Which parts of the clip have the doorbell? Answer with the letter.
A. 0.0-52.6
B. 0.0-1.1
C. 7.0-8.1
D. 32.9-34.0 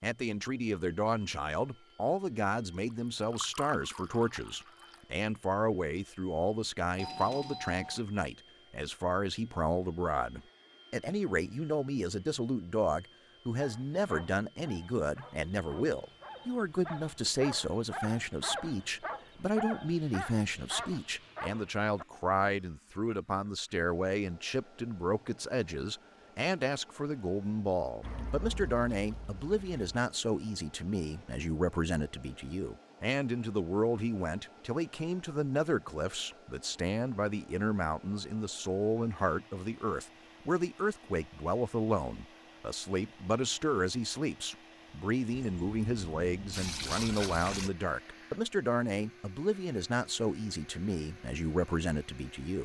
C.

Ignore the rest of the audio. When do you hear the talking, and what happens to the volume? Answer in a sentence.
You can hear the talking from 0.0 to 52.6 s, at a steady volume.